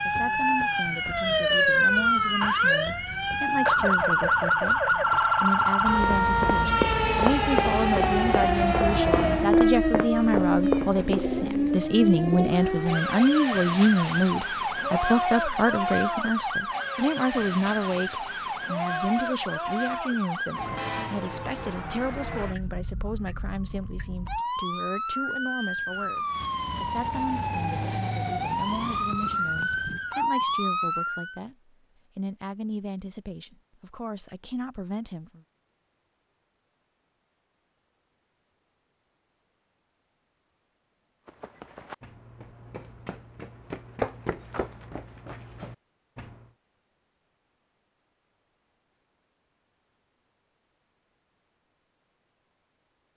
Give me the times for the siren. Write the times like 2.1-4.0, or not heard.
0.0-31.4.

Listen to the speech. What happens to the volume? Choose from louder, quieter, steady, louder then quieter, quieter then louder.
louder then quieter.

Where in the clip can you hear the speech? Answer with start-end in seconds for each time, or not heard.
0.1-35.4.